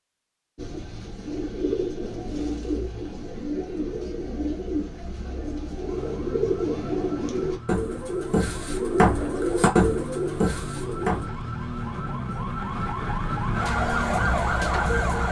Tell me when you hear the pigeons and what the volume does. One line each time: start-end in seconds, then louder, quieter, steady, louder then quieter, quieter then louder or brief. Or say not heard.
0.6-11.3 louder.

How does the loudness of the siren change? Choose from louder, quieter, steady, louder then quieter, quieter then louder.
louder.